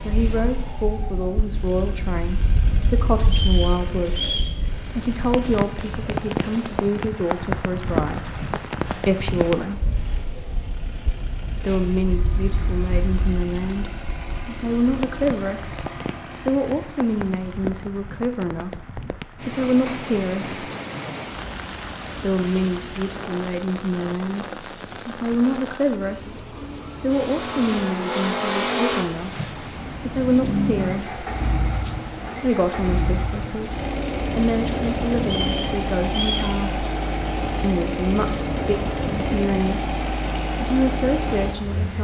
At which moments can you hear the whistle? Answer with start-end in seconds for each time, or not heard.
3.2-4.5, 35.2-36.5.